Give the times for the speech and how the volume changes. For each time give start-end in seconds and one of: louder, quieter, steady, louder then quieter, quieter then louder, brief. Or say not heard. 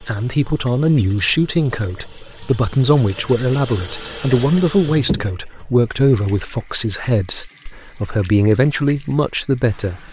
0.0-10.0 steady.